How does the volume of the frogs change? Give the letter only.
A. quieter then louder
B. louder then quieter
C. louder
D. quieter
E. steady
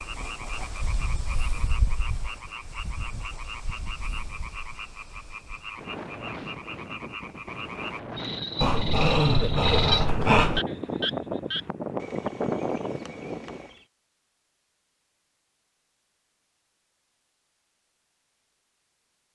B.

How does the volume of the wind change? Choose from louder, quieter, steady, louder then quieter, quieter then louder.
quieter then louder.